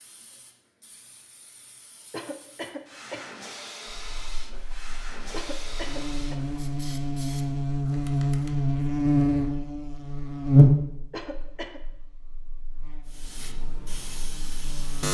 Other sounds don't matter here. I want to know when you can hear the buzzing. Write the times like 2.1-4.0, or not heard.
3.9-15.1.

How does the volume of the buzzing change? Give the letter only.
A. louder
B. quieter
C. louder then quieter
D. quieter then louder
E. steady
C.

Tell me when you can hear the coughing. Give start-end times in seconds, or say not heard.
2.1-3.4, 5.3-6.3, 11.1-11.8.